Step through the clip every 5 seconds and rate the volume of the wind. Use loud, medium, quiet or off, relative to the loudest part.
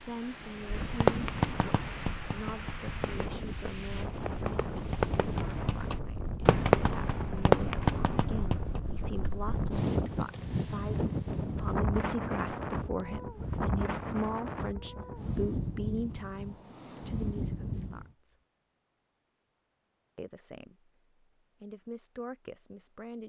medium, loud, loud, loud, off.